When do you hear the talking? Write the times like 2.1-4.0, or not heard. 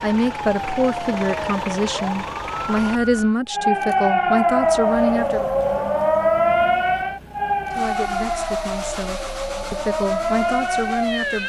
0.0-5.5, 7.7-11.4.